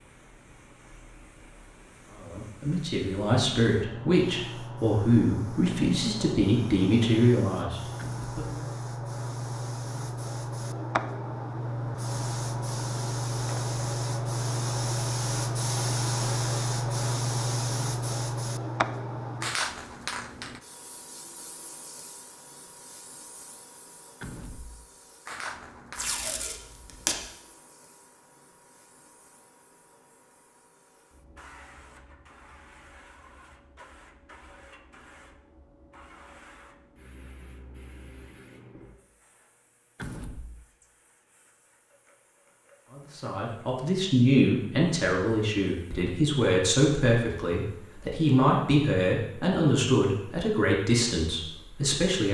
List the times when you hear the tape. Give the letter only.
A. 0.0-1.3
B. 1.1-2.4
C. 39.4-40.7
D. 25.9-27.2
D.